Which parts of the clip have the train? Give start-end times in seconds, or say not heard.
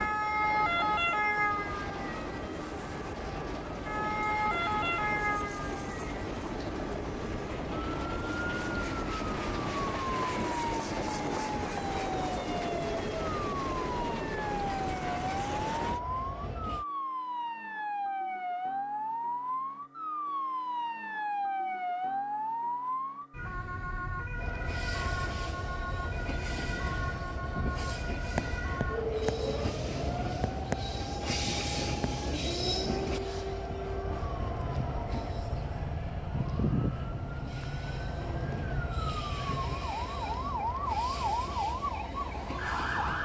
0.0-16.9, 24.4-43.1.